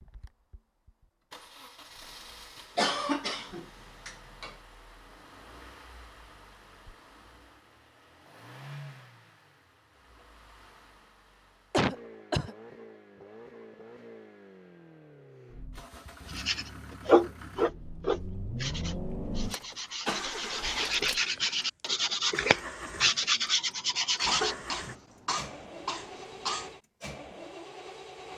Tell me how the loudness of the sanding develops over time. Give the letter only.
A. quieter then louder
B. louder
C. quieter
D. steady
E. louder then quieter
A.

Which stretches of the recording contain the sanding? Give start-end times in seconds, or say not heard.
16.3-24.6.